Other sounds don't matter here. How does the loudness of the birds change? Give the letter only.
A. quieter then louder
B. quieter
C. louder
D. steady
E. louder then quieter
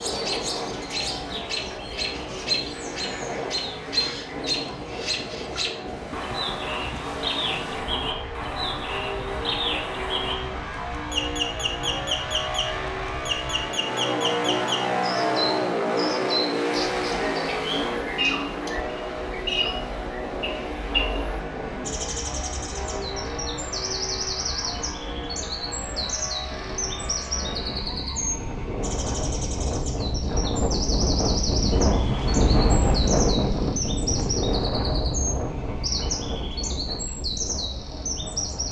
D.